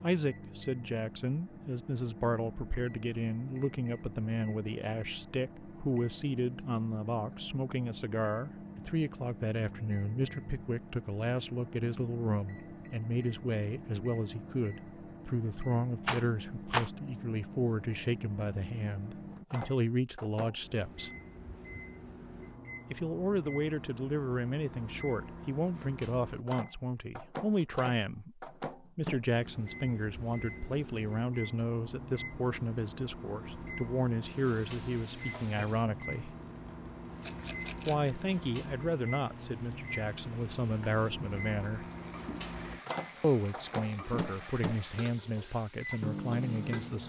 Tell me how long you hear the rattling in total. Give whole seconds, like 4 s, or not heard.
2 s.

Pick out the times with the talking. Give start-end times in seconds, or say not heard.
0.0-21.1, 22.9-36.4, 37.9-41.9, 43.2-47.0.